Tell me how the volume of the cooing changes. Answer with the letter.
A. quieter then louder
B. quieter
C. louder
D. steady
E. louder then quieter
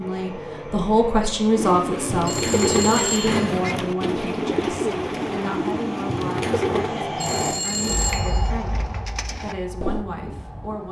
B.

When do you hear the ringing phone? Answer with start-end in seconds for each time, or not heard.
2.2-3.5, 7.2-8.5.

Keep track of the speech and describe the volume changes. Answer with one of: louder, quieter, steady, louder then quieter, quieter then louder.
quieter.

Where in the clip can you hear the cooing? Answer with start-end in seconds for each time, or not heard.
1.6-10.1.